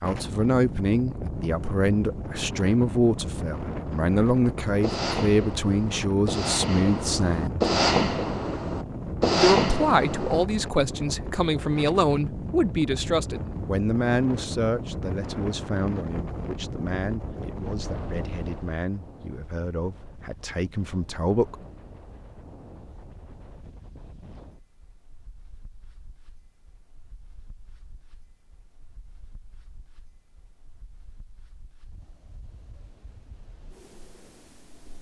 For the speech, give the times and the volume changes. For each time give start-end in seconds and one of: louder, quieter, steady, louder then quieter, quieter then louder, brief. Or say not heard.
0.0-7.7 steady
9.3-21.6 quieter.